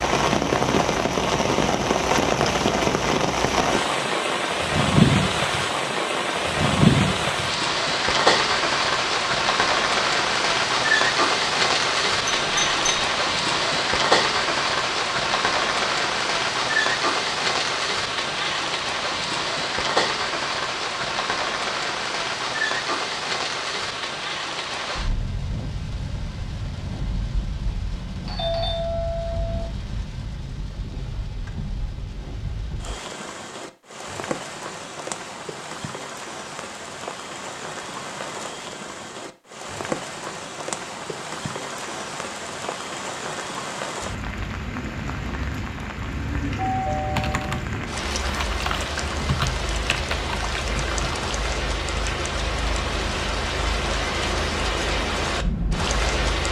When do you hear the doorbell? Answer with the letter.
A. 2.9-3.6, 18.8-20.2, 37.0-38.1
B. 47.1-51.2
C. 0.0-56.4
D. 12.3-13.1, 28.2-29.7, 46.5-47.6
D.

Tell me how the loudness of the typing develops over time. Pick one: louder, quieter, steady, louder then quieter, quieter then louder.
louder then quieter.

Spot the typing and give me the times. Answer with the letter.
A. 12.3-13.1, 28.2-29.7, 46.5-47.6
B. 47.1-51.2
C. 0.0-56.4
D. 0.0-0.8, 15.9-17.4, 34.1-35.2
B.